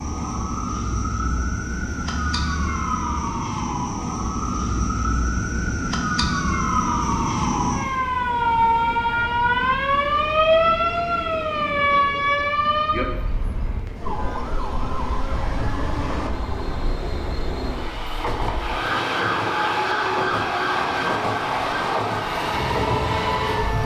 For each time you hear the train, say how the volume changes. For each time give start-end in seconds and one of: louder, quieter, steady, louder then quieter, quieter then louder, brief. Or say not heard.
0.0-23.8 louder.